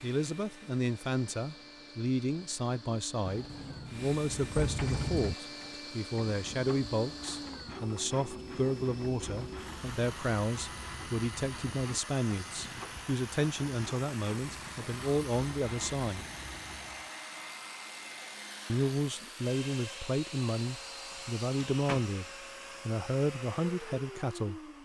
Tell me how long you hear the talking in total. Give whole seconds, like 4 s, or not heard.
22 s.